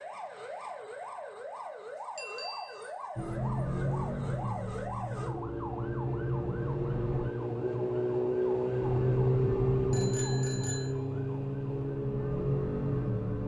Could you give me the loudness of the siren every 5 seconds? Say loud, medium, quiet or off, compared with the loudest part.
medium, loud, loud.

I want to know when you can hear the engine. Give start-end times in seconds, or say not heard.
3.1-7.3, 8.8-13.4.